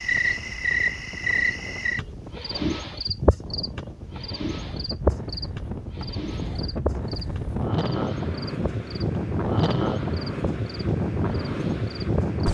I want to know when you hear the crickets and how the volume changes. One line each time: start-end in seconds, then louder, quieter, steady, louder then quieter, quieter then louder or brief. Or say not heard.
0.0-12.4 quieter.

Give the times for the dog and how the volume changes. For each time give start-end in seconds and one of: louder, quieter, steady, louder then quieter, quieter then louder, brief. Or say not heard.
not heard.